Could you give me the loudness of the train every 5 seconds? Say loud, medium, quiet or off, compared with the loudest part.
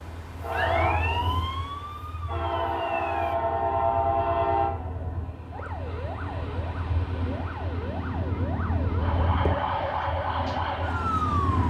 loud, medium, medium.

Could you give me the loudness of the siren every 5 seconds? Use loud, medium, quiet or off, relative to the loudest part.
medium, medium, loud.